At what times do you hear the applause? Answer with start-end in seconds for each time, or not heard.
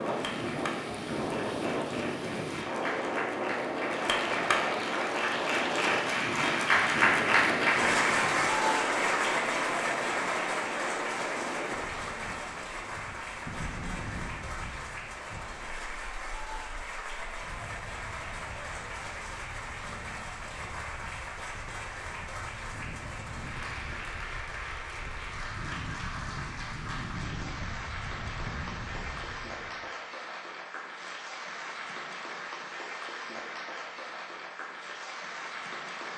0.0-36.1.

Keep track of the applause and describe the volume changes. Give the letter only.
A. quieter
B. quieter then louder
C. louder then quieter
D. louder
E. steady
A.